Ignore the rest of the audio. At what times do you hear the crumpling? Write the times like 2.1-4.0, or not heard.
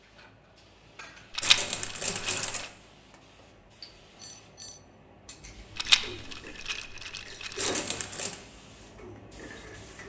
1.4-2.7, 7.5-8.4.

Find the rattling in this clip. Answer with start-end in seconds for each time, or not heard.
1.4-2.7, 5.8-7.6.